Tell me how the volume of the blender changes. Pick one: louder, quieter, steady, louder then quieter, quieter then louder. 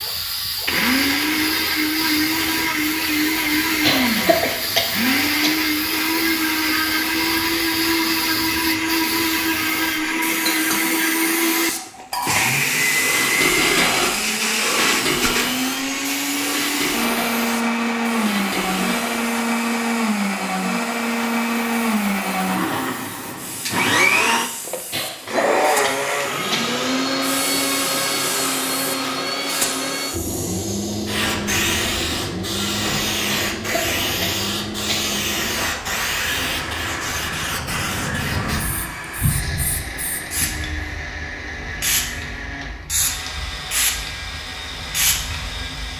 quieter.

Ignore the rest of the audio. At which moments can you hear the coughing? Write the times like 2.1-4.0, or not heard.
3.8-5.5, 24.9-26.8, 33.2-35.1.